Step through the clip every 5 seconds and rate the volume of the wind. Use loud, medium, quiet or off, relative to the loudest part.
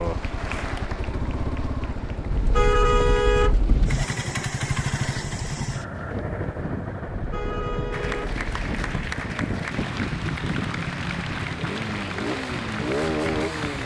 medium, loud, loud.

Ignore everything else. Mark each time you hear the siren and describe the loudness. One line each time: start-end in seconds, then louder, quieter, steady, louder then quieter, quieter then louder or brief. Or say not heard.
not heard.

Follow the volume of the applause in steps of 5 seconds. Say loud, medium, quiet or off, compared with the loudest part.
medium, loud, loud.